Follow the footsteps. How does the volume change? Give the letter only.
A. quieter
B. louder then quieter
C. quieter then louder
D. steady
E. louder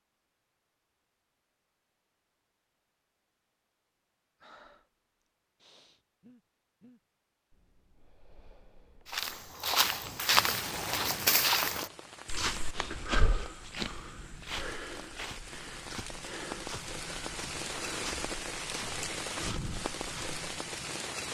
A.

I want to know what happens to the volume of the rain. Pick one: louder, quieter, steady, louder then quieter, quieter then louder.
quieter then louder.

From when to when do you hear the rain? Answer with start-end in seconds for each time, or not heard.
10.0-21.2.